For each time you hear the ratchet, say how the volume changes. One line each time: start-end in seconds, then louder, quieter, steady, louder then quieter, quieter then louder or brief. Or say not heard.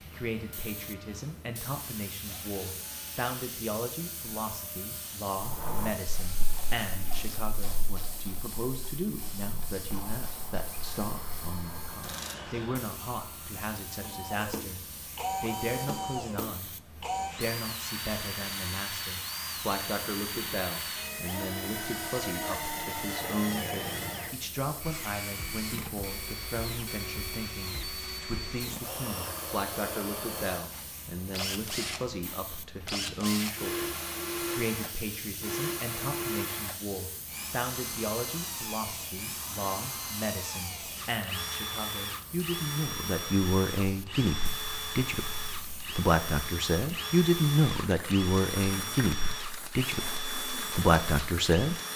5.4-12.9 quieter then louder.